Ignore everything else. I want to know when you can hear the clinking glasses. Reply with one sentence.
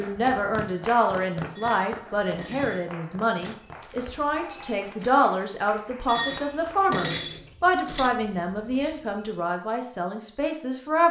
You can hear the clinking glasses from 1.6 to 3.5 s and from 6.0 to 8.1 s.